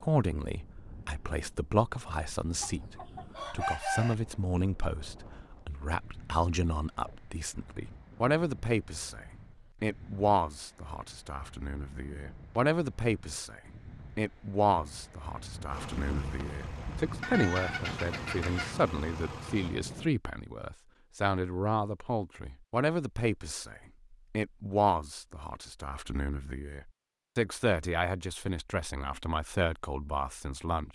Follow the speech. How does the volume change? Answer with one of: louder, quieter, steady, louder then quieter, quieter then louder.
steady.